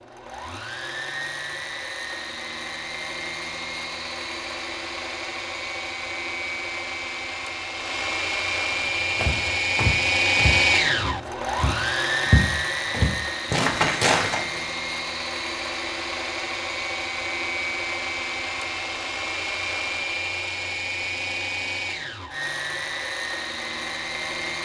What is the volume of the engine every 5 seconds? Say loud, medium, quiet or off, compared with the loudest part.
medium, loud, loud, medium, medium.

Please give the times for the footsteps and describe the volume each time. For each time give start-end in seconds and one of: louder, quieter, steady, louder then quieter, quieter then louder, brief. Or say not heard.
9.2-14.6 quieter then louder.